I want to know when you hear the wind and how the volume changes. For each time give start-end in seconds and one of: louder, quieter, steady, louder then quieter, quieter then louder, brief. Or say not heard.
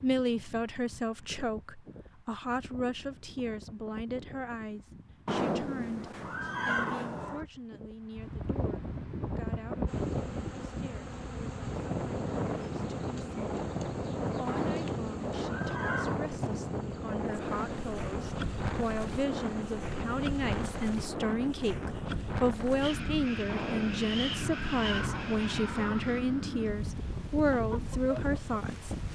0.0-29.1 louder.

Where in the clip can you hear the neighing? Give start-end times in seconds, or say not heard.
5.2-7.5, 14.4-16.2, 23.4-26.1.